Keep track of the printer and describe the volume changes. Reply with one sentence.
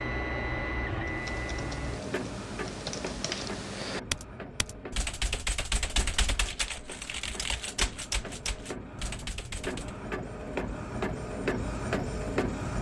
The volume of the printer goes down, then up.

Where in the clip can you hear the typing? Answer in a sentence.
You can hear the typing from 1.1 to 9.9 s.